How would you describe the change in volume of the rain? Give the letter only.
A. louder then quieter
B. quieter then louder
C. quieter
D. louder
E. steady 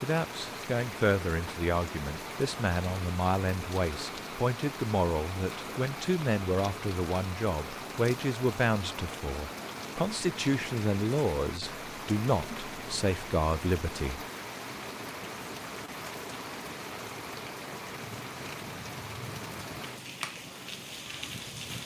E.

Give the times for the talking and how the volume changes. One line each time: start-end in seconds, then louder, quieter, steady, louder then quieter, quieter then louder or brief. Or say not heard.
0.0-14.2 steady.